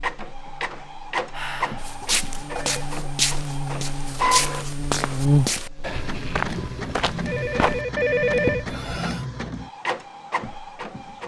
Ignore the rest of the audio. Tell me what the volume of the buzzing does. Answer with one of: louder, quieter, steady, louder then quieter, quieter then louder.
louder.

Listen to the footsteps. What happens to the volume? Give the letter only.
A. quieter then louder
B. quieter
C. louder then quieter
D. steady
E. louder
D.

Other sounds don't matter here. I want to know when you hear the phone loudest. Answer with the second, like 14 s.
8 s.